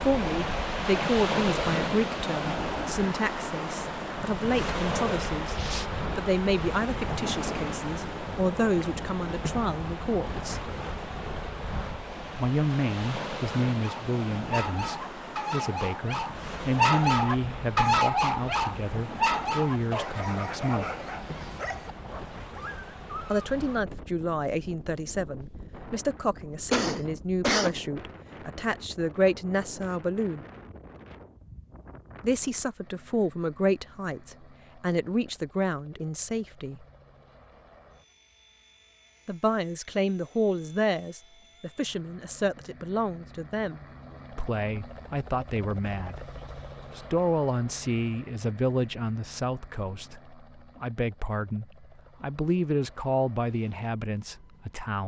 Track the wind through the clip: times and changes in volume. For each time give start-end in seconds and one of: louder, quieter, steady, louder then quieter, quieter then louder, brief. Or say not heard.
0.0-32.8 quieter.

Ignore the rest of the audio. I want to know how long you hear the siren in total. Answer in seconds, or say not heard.
not heard.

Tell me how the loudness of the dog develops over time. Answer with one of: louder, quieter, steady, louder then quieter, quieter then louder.
louder then quieter.